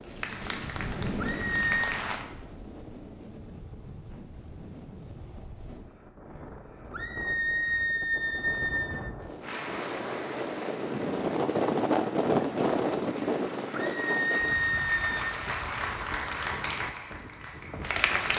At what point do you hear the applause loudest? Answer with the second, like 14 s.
18 s.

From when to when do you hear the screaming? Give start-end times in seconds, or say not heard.
1.2-1.8, 6.9-9.0, 13.7-15.2.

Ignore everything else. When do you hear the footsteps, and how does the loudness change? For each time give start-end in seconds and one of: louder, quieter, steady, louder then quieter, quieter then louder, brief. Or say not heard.
not heard.